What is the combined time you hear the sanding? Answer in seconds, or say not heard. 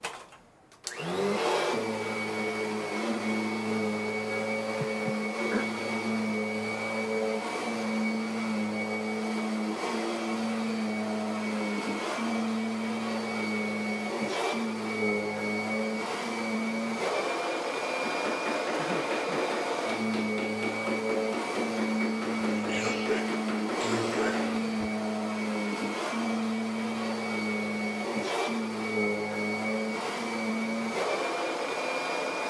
not heard.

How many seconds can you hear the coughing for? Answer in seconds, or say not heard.
4 s.